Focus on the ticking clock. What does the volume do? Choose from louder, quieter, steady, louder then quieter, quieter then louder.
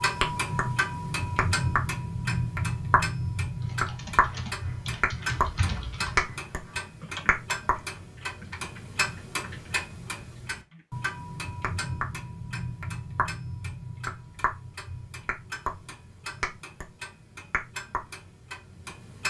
quieter.